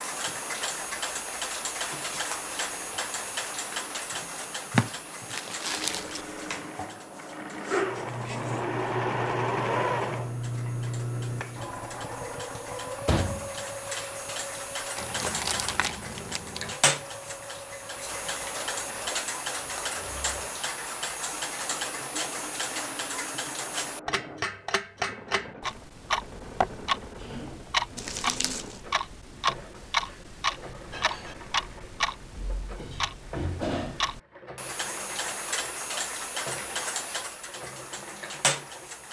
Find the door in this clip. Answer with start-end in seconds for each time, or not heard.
13.1-14.1.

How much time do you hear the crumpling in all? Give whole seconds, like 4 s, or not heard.
5 s.